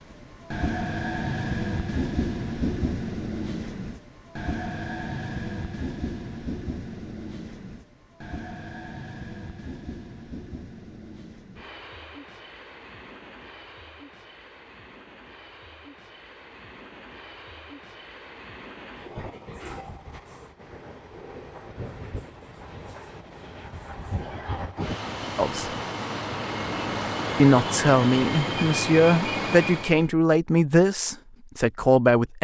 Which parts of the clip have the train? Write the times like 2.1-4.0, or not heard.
0.0-30.1.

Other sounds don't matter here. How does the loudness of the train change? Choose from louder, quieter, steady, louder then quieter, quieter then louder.
quieter then louder.